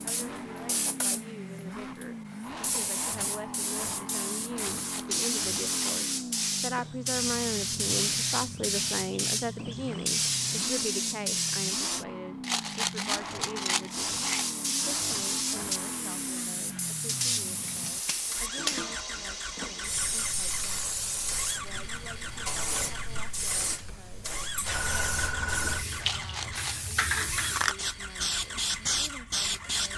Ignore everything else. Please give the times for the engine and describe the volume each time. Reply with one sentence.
The engine can be heard from 0.0 to 29.9 s, at a steady volume.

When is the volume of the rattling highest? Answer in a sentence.
The loudest moment of the rattling is at 13 seconds.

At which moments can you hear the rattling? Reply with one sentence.
You can hear the rattling from 4.5 to 6.5 s, from 12.4 to 14.4 s and from 25.9 to 27.1 s.